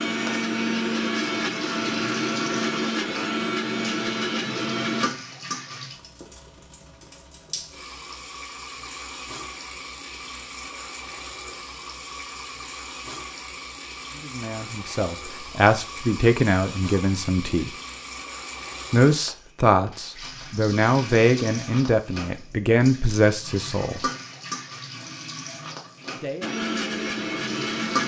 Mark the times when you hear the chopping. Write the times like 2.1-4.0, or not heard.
not heard.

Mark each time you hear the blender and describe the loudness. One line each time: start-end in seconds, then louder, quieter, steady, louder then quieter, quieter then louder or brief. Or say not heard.
0.0-5.1 steady
26.4-28.0 brief.